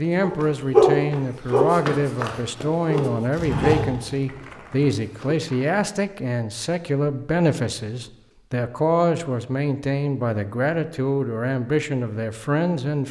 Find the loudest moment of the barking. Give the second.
1 s.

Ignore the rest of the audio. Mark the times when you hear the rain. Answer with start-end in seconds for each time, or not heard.
not heard.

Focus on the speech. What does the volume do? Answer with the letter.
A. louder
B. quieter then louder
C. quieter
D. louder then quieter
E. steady
E.